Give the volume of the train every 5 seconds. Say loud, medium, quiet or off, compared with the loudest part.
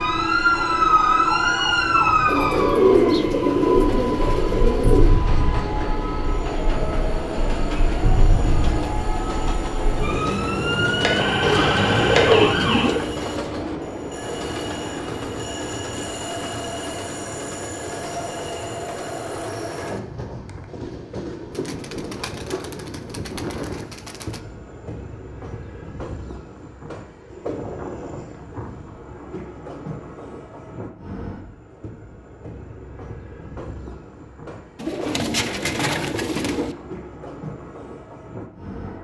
loud, loud, loud, loud, medium, medium, medium, medium.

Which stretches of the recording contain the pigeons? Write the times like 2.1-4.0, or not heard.
2.2-5.2, 11.4-13.0, 21.6-24.4, 34.8-36.8.